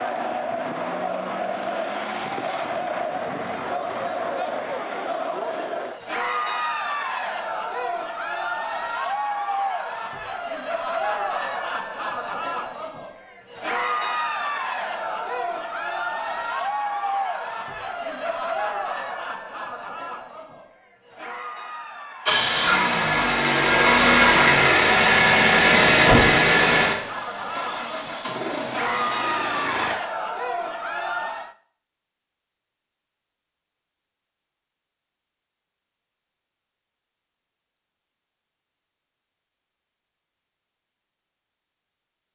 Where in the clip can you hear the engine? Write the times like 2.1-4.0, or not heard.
22.2-29.9.